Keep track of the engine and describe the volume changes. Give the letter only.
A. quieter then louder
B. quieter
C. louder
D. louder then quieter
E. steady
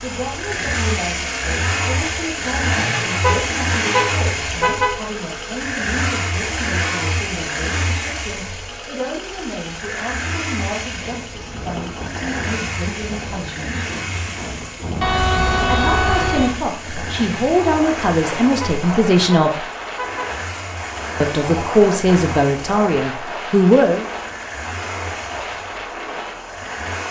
B.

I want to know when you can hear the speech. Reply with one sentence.
You can hear the speech from 0.0 to 13.9 s, from 15.6 to 19.6 s and from 21.2 to 24.1 s.